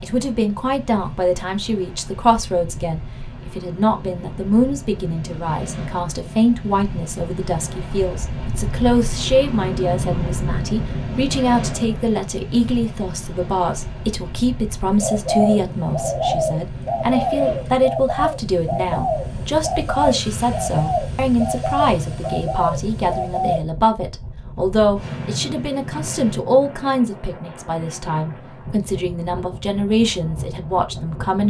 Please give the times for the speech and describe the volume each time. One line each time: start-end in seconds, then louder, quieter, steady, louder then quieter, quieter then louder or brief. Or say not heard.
0.0-31.4 steady.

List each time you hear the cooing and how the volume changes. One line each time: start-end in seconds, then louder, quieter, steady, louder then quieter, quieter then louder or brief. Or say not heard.
14.9-23.6 steady.